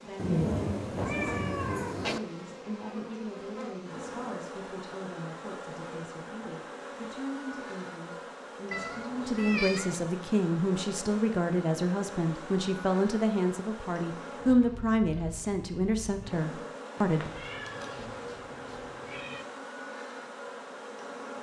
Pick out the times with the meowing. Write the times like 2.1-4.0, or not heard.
0.1-2.2, 8.7-10.1, 17.0-19.4.